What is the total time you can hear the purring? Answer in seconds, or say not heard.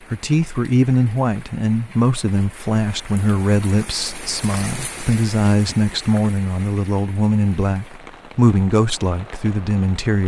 not heard.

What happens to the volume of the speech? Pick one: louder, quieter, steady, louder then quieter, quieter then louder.
steady.